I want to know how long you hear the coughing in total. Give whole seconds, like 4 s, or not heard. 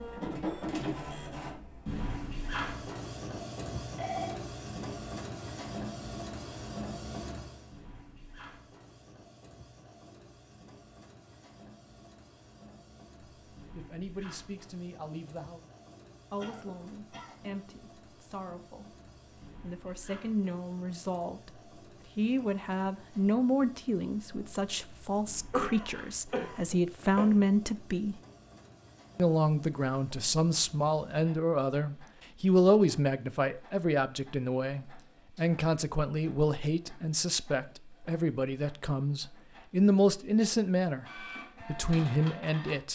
3 s.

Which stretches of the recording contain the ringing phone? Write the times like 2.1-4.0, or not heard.
3.8-4.4.